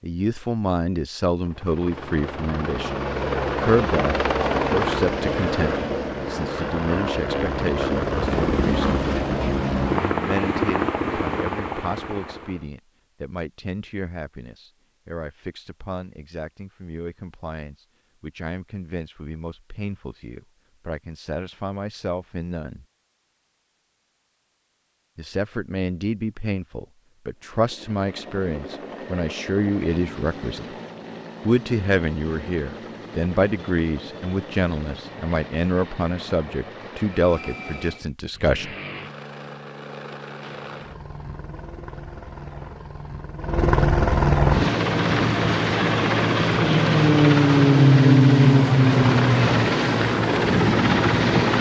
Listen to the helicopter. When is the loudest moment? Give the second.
48 s.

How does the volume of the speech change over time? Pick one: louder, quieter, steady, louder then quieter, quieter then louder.
quieter then louder.